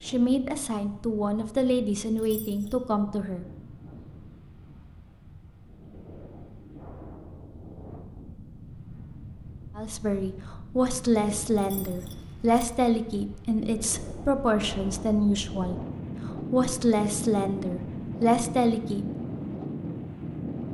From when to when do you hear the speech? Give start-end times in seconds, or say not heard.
0.0-3.5, 9.8-19.1.